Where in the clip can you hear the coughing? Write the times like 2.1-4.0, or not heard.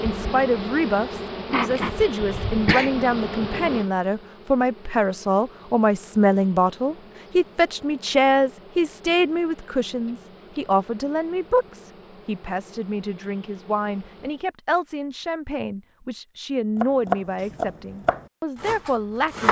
2.2-2.9.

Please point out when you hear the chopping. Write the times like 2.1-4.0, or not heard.
16.8-19.4.